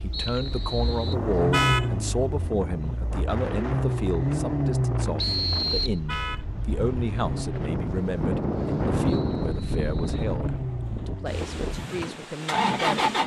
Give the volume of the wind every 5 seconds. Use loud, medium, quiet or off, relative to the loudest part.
medium, loud, medium.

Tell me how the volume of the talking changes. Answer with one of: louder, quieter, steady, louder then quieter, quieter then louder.
quieter.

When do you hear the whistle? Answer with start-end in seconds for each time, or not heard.
0.1-1.1, 5.2-6.0, 9.1-10.3.